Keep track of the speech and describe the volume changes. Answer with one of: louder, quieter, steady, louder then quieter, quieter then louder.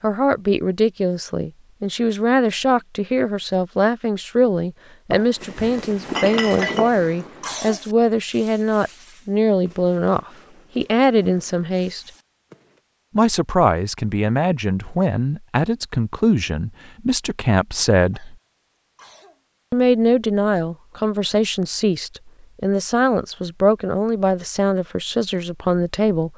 steady.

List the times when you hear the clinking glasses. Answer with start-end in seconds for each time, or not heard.
5.1-6.9.